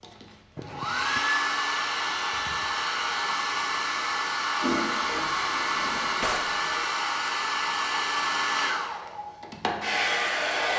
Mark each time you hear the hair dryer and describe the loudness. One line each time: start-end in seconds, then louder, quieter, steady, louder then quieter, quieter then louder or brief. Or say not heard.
0.0-10.7 steady.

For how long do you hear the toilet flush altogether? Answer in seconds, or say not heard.
2 s.